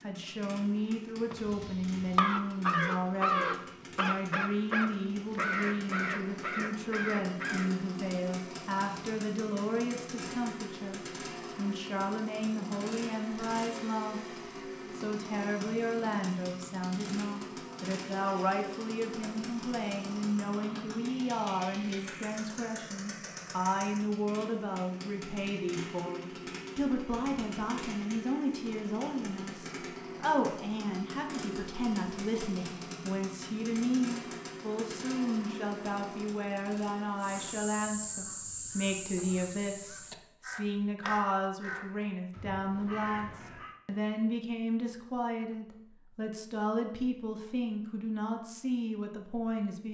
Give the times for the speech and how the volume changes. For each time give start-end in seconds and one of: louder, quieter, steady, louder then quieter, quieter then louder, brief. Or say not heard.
0.0-49.8 steady.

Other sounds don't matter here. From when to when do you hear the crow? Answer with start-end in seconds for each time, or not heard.
1.3-7.7, 37.2-43.8.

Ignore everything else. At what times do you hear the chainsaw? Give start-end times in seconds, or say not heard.
0.0-37.5.